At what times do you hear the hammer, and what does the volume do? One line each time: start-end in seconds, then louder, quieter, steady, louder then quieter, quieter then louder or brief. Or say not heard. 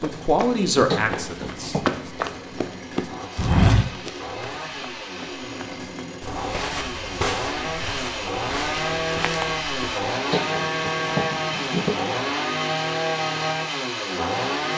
not heard.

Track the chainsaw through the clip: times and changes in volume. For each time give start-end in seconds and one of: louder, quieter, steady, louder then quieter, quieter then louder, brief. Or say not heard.
0.0-14.7 louder.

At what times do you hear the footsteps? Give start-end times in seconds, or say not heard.
0.0-10.1.